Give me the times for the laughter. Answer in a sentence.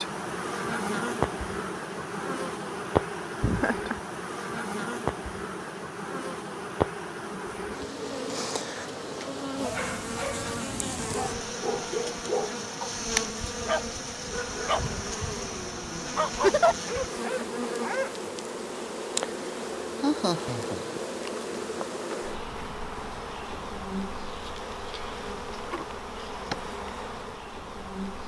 You can hear the laughter from 3.4 to 4.0 s, from 16.3 to 16.8 s and from 20.0 to 21.3 s.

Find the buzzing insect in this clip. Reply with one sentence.
You can hear the buzzing insect from 0.0 to 28.2 s.